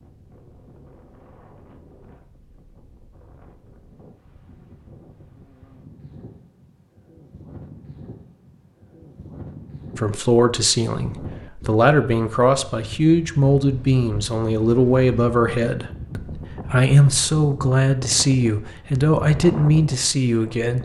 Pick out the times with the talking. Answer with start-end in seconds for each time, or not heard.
9.9-20.7.